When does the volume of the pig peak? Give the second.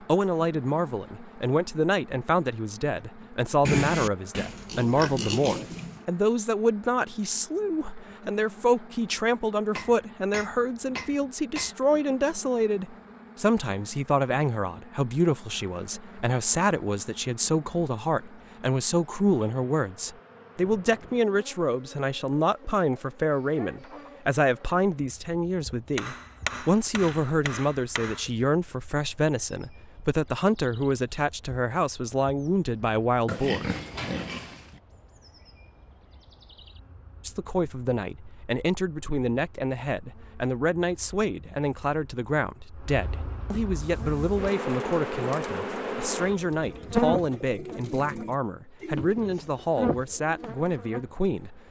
4 s.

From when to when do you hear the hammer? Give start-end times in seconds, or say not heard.
9.8-11.8, 25.9-28.2.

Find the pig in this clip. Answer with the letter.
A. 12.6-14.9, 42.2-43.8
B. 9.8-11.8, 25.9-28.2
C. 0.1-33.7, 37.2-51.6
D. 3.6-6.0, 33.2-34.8
D.